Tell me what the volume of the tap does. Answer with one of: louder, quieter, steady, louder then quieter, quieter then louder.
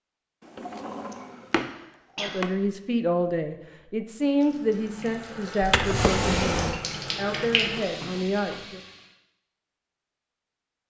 louder then quieter.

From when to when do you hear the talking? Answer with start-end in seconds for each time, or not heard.
2.1-8.8.